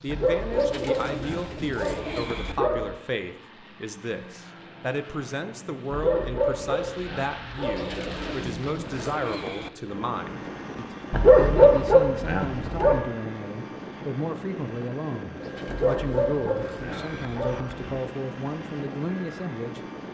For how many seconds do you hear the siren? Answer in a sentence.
The siren can't be heard in this clip.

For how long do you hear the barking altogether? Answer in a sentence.
You can hear the barking for 9 seconds altogether.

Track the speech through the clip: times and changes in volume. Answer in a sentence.
The speech can be heard from 0.0 to 19.8 s, at a steady volume.